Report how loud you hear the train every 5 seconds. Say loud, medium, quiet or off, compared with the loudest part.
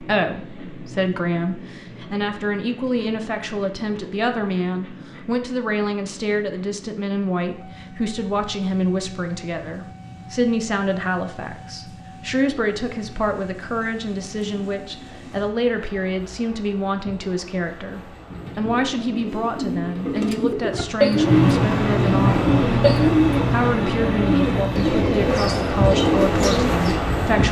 quiet, quiet, quiet, quiet, loud, loud.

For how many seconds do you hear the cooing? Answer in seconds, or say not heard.
9 s.